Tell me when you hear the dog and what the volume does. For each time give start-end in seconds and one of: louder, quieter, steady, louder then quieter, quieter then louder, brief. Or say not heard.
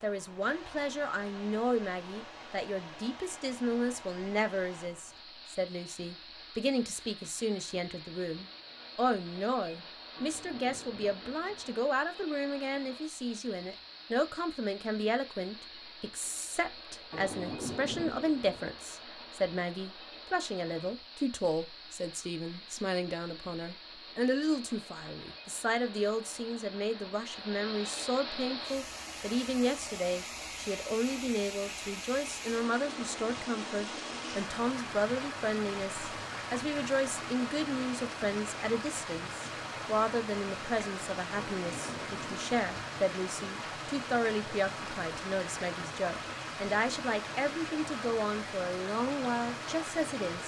not heard.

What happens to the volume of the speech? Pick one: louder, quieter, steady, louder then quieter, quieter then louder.
steady.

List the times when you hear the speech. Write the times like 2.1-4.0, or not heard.
0.0-50.4.